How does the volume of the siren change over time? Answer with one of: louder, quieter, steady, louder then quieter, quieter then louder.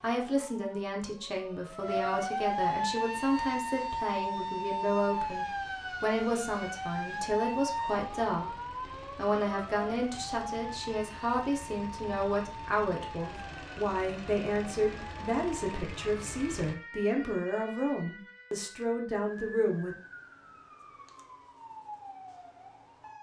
quieter.